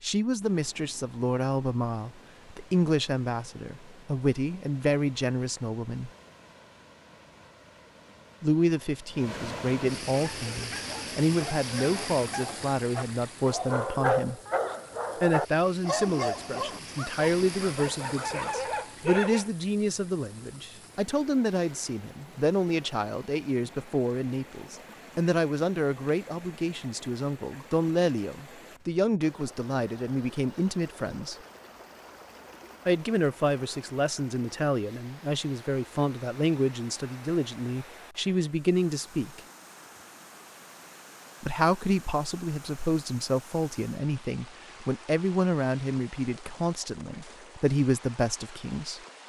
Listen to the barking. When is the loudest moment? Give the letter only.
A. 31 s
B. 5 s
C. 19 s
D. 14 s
D.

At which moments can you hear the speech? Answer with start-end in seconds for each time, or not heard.
0.0-6.1, 8.4-14.4, 15.2-31.4, 32.9-39.4, 41.4-49.0.